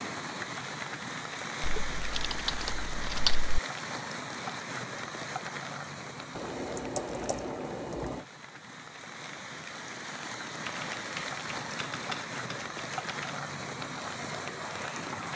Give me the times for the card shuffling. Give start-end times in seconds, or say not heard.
not heard.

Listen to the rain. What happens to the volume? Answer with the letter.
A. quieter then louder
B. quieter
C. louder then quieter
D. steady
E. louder
A.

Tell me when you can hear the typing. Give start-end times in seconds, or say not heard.
1.6-3.5, 6.3-8.2, 10.6-13.3.